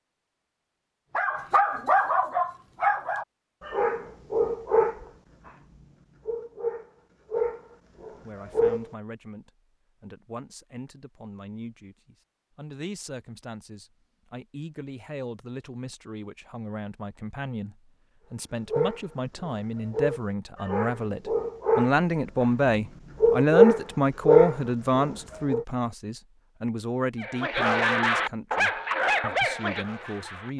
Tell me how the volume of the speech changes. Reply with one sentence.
The loudness of the speech goes up, then down.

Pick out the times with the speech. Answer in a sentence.
You can hear the speech from 8.1 to 30.5 s.